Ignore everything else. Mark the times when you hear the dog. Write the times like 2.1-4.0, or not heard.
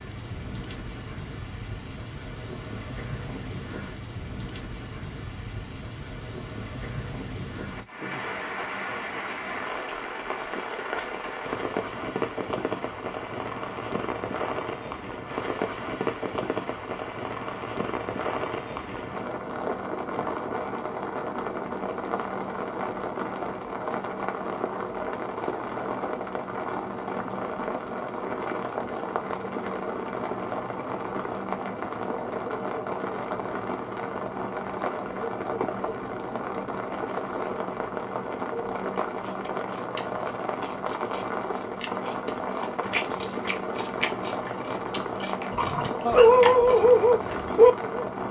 45.5-48.2.